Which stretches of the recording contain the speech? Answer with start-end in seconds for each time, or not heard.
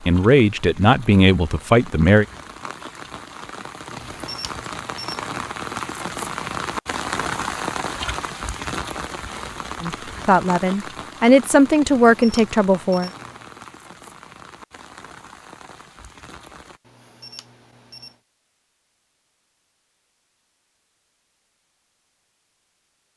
0.0-2.2, 9.8-13.1.